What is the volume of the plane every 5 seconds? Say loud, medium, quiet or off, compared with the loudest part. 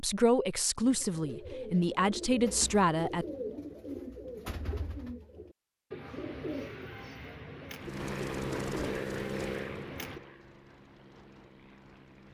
off, loud, quiet.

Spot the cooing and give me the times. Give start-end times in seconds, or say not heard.
0.8-10.2.